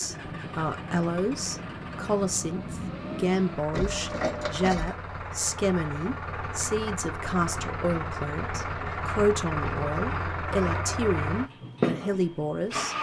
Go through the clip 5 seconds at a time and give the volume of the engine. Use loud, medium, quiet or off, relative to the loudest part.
medium, loud, loud.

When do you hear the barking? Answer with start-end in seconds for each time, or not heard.
not heard.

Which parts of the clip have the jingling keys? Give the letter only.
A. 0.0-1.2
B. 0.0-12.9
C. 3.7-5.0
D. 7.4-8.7
C.